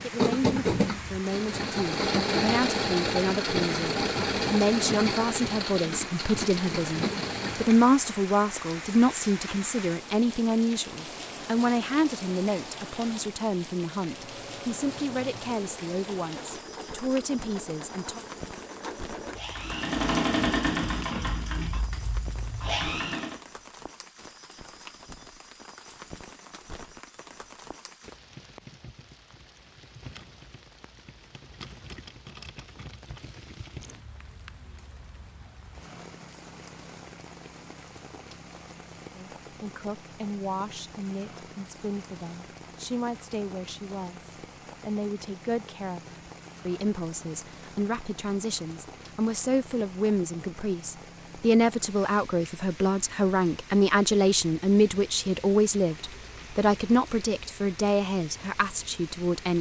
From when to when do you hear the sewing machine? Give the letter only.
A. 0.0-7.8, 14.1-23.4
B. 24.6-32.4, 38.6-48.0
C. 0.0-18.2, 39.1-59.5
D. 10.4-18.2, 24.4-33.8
A.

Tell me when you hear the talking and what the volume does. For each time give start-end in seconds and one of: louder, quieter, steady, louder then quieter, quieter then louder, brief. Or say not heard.
0.0-18.2 louder then quieter
39.1-59.5 louder.